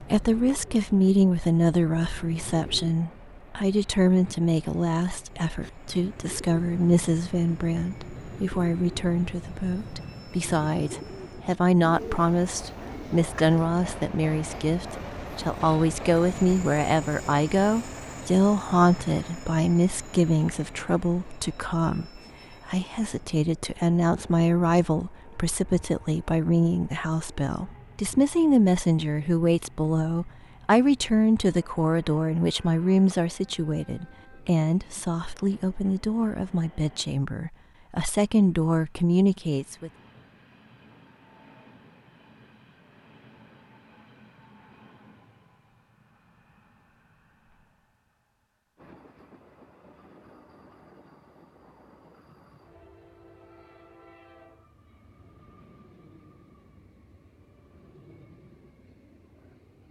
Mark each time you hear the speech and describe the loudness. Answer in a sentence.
The speech can be heard from 0.0 to 39.9 s, at a steady volume.